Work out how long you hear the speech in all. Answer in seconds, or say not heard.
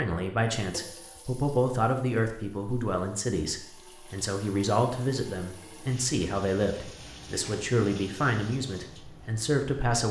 10 s.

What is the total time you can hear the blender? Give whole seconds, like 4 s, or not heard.
not heard.